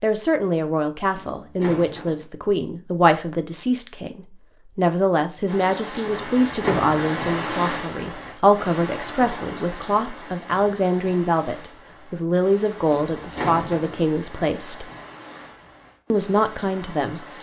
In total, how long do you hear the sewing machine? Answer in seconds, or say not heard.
not heard.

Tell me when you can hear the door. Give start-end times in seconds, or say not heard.
1.1-2.2, 6.2-7.0, 12.9-14.0.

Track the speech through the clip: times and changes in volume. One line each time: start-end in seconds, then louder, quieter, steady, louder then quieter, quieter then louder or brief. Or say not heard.
0.0-14.9 steady
16.1-17.2 brief.